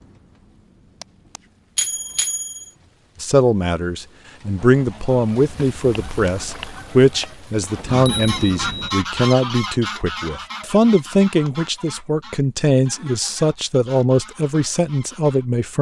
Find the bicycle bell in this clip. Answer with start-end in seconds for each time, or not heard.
1.0-2.6, 7.6-8.9, 11.1-11.5.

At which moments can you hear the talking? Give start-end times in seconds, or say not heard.
3.2-15.7.